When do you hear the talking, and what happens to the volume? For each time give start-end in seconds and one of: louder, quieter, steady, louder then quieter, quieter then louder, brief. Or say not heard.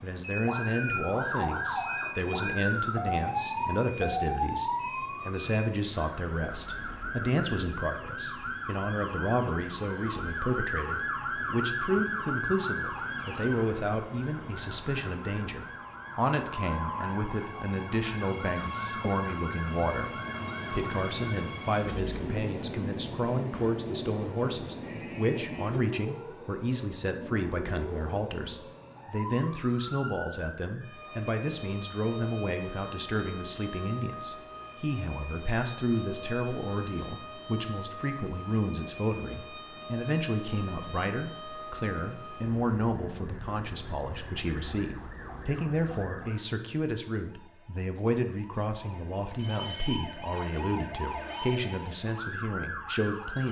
0.0-53.4 steady.